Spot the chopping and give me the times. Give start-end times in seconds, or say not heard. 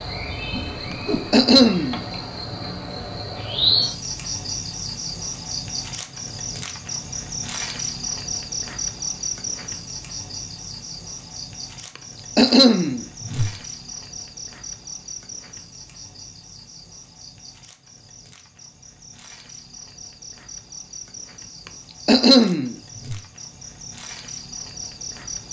not heard.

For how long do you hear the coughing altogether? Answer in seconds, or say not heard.
3 s.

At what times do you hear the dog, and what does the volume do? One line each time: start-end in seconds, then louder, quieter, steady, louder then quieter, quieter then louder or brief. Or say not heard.
not heard.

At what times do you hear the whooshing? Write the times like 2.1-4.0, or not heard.
0.5-1.4, 13.2-13.6, 22.9-23.3.